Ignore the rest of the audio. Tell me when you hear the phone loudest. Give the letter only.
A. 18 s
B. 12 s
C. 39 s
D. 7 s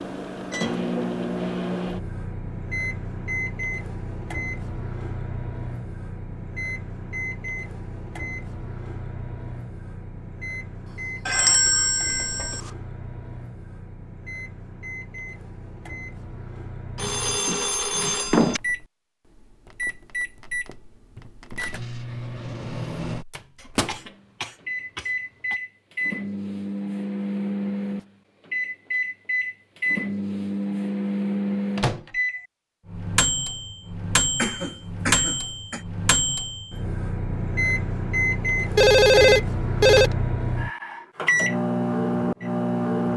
C.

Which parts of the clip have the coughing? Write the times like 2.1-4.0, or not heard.
10.8-12.8, 23.6-25.6, 34.4-35.8.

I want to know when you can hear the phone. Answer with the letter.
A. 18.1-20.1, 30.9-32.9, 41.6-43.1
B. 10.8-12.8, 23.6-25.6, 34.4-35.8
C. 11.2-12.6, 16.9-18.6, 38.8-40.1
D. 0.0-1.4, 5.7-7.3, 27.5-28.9
C.